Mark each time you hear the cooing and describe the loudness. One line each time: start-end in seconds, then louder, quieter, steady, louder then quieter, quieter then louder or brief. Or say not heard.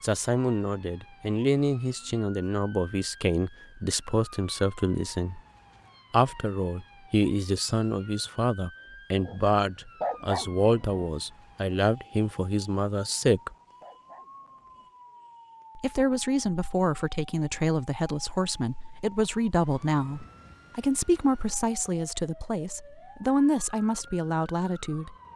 not heard.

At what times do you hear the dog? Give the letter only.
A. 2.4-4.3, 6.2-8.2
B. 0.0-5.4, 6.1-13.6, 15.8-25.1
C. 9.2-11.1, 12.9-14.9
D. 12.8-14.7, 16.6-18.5
C.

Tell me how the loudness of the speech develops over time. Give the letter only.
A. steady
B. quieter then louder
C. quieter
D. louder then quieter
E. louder
A.